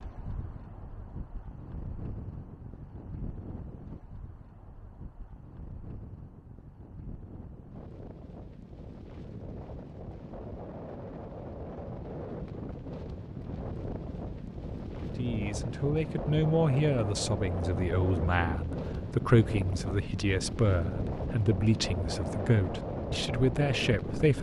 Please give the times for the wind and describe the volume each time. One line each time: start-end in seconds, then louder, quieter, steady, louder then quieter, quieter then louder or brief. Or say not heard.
0.0-24.3 louder.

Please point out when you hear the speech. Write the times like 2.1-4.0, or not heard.
15.2-24.3.